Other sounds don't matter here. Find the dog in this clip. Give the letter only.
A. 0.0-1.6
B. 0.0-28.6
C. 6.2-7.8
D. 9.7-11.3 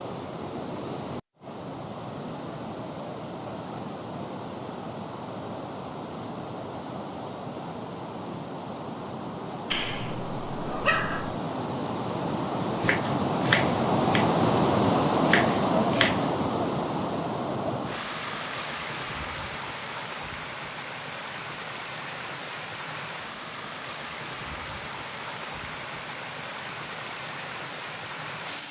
D.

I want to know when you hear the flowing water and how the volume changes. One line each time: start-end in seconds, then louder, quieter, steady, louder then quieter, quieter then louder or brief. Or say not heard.
0.0-28.6 louder then quieter.